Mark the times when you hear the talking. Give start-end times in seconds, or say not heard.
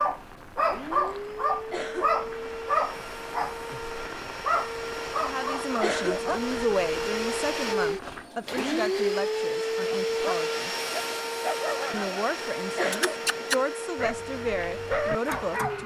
5.2-10.7, 11.9-15.8.